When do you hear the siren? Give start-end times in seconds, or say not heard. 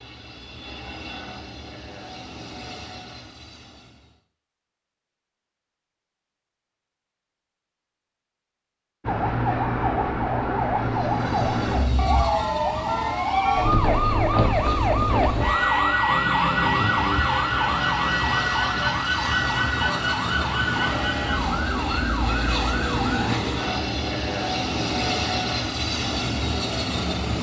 9.0-23.4.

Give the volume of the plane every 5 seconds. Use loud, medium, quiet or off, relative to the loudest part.
quiet, off, medium, medium, loud, loud.